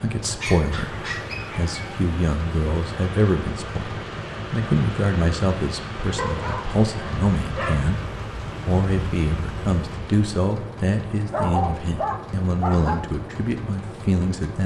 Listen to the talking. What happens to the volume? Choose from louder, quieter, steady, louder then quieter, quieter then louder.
steady.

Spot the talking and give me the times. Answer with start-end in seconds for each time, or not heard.
0.0-14.6.